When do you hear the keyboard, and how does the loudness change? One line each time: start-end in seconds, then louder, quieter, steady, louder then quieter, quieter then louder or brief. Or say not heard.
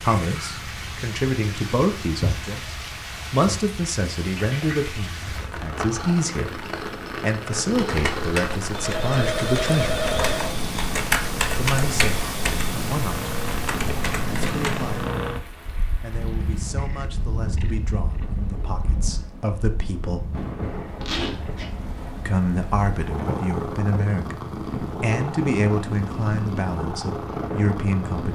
7.7-15.2 louder then quieter.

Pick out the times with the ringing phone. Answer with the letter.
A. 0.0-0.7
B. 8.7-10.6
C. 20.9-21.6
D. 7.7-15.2
B.